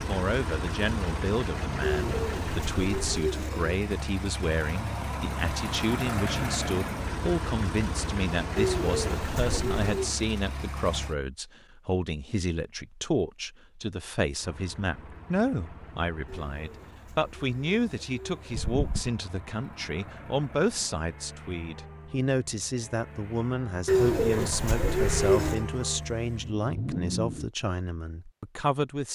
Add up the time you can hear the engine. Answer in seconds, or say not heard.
24 s.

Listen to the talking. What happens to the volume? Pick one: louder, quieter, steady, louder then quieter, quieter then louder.
steady.